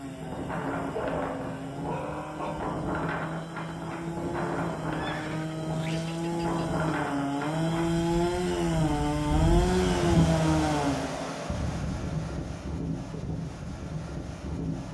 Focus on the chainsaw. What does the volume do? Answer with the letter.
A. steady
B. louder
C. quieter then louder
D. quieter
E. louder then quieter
B.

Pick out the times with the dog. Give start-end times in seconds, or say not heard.
0.9-2.5.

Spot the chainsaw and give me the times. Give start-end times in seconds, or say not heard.
0.0-11.3.